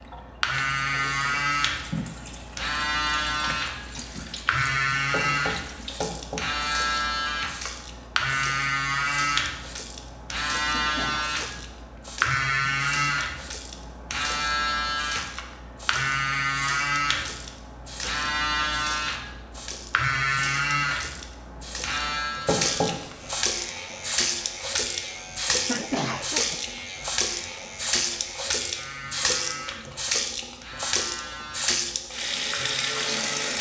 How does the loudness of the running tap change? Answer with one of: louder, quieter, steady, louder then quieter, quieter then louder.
louder.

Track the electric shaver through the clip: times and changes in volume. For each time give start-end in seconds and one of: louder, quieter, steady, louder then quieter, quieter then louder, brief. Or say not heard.
0.0-33.5 quieter.